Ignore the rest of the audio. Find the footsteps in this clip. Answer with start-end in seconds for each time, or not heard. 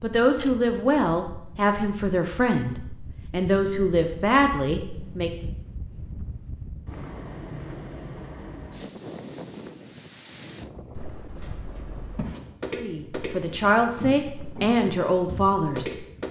11.3-16.2.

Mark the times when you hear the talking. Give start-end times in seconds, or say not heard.
0.0-5.5, 12.7-16.1.